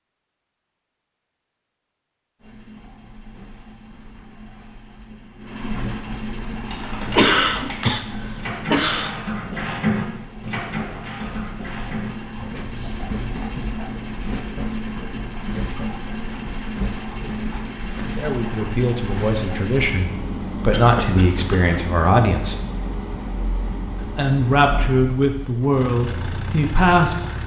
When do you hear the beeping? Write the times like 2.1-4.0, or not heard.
not heard.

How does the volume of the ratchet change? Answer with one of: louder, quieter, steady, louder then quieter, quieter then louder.
louder then quieter.